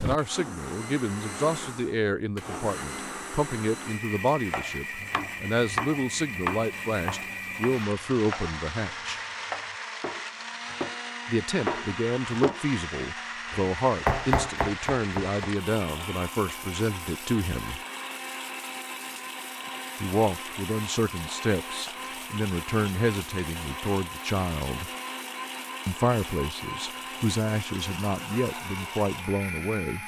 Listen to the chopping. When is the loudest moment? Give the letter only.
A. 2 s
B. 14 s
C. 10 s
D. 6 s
B.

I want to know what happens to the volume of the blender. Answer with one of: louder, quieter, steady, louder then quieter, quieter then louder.
steady.